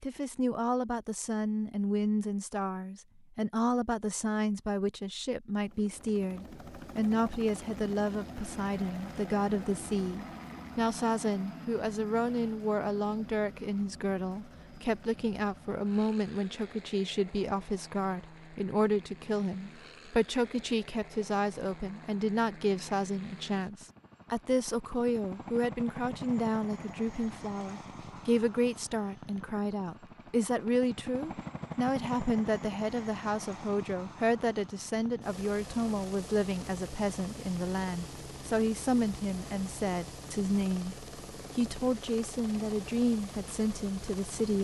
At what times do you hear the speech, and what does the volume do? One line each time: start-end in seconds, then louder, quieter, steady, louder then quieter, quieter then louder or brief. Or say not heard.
0.0-44.5 steady.